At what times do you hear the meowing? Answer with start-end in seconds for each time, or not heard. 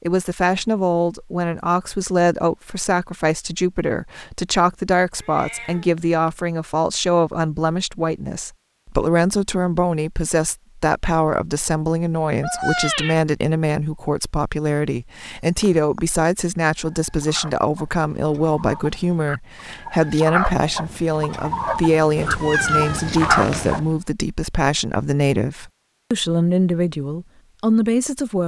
5.2-6.4, 12.4-13.2, 22.1-23.8.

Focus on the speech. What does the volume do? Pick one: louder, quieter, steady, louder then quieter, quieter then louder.
steady.